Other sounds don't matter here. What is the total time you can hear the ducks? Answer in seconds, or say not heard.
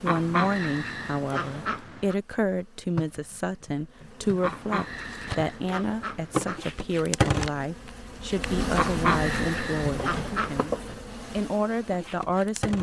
6 s.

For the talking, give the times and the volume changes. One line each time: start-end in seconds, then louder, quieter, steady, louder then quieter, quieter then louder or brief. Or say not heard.
0.0-12.7 steady.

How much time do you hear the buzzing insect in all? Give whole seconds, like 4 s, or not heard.
13 s.